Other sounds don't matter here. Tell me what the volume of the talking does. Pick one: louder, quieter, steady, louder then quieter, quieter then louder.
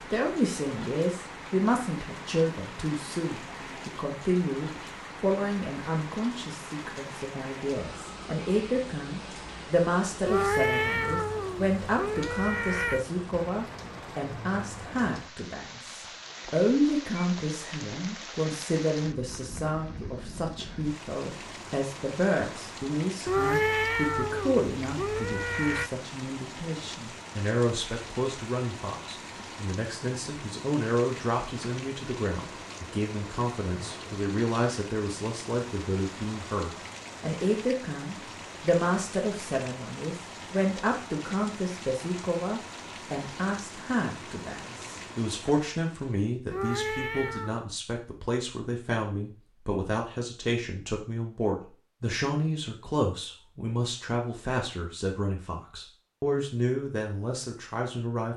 steady.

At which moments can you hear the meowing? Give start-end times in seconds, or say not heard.
10.2-13.1, 23.2-25.9, 46.5-47.6.